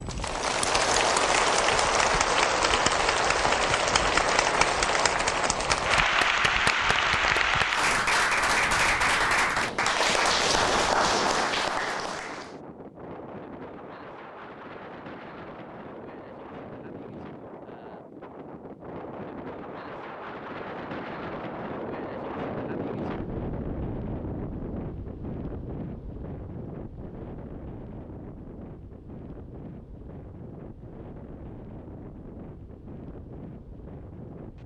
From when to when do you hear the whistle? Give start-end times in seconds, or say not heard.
not heard.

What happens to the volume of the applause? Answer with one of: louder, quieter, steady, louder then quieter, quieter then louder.
steady.